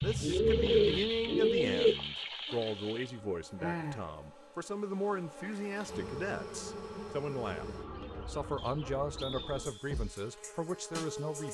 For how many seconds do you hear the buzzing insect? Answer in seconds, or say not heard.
9 s.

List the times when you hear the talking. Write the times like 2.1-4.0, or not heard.
0.0-7.7, 8.2-11.5.